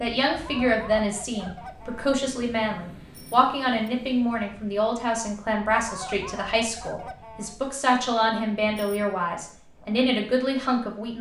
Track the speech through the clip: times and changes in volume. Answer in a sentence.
The speech can be heard from 0.0 to 11.1 s, at a steady volume.